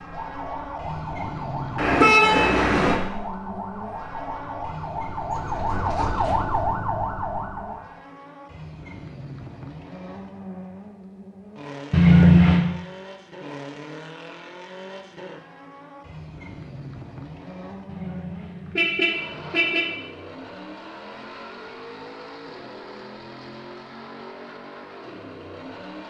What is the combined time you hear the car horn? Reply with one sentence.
You can hear the car horn for 4 seconds altogether.